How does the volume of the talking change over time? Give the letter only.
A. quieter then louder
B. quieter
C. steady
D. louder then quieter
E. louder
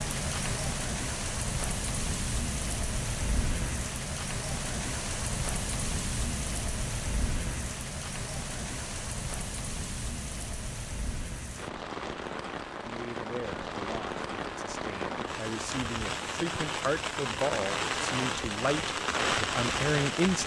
E.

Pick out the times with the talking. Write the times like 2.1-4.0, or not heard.
12.8-20.4.